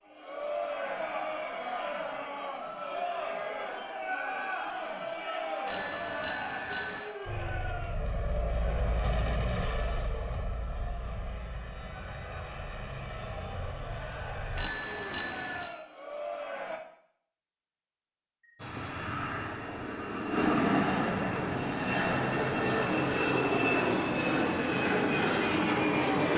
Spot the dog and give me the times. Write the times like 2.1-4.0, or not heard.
not heard.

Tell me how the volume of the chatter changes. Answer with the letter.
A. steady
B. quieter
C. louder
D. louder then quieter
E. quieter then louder
E.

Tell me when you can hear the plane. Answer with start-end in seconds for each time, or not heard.
7.2-14.7, 18.6-26.3.